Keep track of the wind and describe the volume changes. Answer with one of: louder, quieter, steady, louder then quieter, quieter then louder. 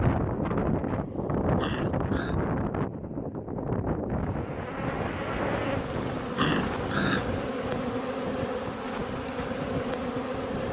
quieter.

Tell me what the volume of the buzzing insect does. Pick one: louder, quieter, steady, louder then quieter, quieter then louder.
steady.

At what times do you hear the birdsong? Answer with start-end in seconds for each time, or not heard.
not heard.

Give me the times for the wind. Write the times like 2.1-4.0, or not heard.
0.0-10.6.